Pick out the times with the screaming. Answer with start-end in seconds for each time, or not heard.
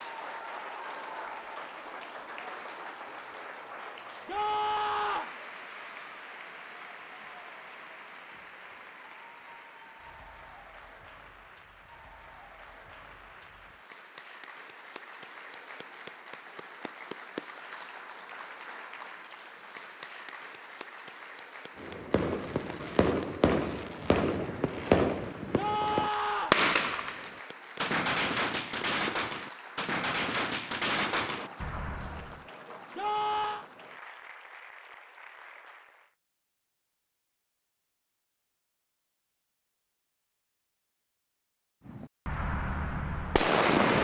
4.2-5.3, 25.6-26.6, 33.0-33.6.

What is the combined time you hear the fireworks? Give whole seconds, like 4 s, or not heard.
13 s.